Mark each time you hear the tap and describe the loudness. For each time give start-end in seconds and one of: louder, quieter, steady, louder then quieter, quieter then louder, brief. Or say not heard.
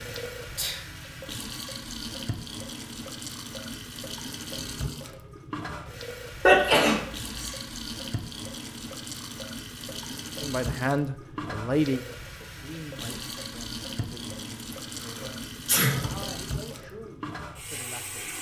0.0-18.3 steady.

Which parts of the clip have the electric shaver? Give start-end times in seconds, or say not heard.
not heard.